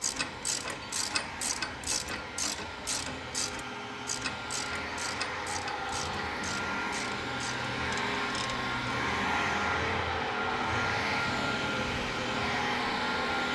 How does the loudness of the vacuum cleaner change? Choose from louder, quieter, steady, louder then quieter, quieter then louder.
louder.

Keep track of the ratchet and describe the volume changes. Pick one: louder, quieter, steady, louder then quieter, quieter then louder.
quieter.